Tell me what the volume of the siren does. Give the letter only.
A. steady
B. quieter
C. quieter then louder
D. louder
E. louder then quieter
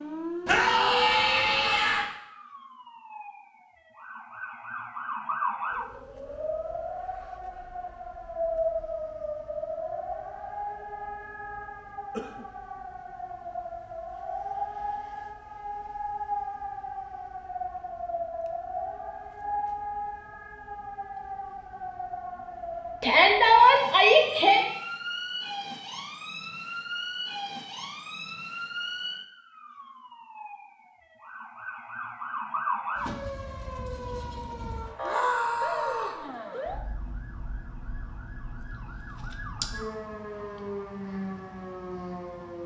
A.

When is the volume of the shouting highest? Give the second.
24 s.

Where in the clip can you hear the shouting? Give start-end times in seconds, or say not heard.
0.5-2.0, 23.0-24.6, 35.0-36.2.